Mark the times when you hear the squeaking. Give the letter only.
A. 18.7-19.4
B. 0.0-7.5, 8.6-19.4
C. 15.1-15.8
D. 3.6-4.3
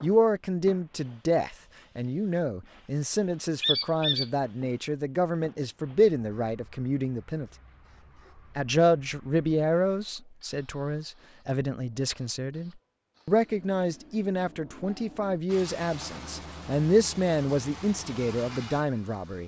D.